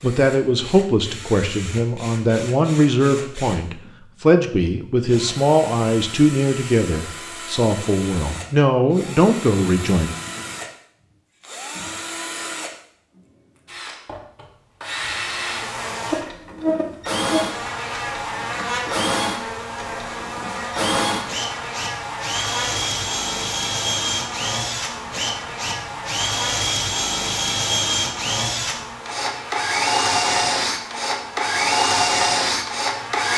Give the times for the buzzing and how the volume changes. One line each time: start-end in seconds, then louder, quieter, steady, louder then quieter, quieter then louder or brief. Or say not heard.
15.3-33.3 quieter.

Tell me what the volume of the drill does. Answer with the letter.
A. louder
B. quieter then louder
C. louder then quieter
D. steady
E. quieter
A.